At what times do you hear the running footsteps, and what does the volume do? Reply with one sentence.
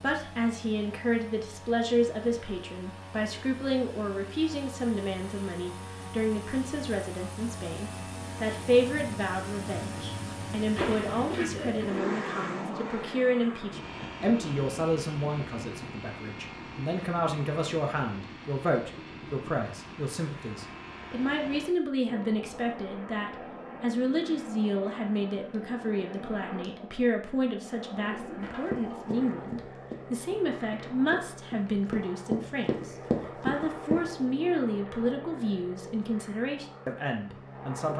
You can hear the running footsteps from 28.4 to 34.1 s, getting louder.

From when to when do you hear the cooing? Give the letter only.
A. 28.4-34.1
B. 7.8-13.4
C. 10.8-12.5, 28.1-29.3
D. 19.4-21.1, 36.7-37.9
C.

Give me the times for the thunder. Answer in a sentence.
The thunder can't be heard in this clip.